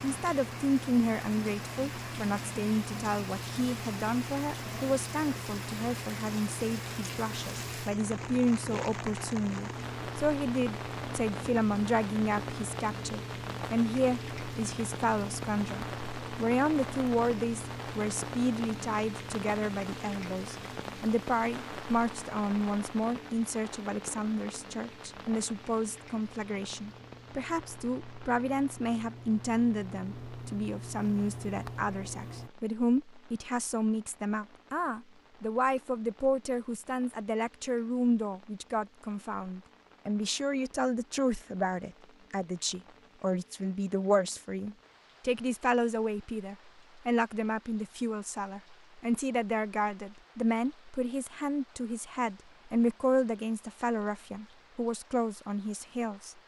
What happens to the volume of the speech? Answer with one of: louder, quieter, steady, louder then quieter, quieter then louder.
steady.